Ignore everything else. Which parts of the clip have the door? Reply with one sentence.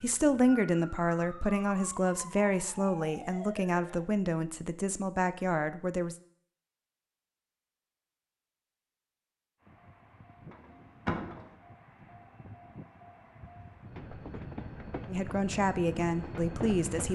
The door can be heard from 10.5 to 11.6 s.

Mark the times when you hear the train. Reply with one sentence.
You can hear the train from 9.6 to 17.0 s.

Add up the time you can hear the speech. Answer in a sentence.
The speech can be heard for 8 seconds in total.